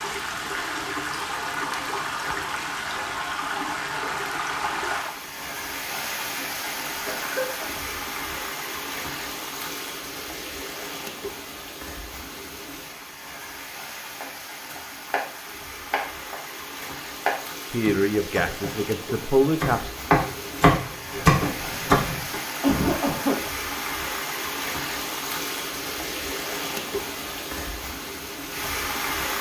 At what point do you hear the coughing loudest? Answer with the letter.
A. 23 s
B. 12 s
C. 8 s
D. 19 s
A.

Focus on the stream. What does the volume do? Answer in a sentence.
The loudness of the stream goes down, then up.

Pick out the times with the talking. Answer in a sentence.
The talking can be heard from 17.7 to 19.9 s.